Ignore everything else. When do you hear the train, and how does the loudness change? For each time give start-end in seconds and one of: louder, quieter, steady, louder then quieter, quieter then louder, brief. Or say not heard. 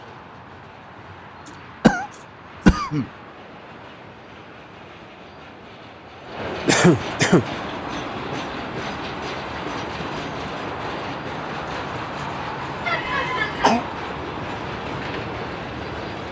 0.0-16.2 louder.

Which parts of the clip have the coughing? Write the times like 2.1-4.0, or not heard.
1.4-3.0, 6.7-7.5, 12.8-13.8.